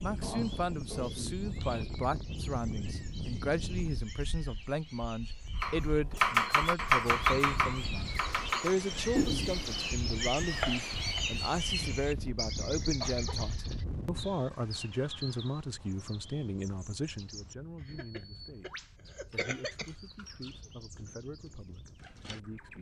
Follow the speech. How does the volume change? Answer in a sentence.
The volume of the speech goes down.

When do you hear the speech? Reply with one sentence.
You can hear the speech from 0.0 to 22.7 s.